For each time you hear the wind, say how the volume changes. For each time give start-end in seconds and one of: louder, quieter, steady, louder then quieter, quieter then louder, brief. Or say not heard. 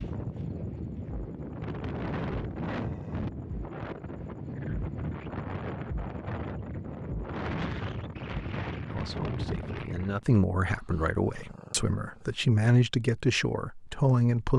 0.0-10.2 steady.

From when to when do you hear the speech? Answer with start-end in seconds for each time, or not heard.
8.9-14.5.